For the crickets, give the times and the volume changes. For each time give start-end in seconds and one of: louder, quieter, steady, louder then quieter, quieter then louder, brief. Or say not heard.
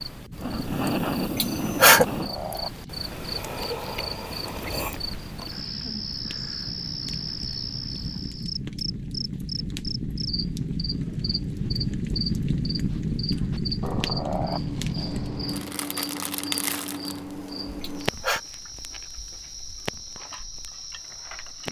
0.0-21.6 quieter.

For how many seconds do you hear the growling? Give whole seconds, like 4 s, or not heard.
3 s.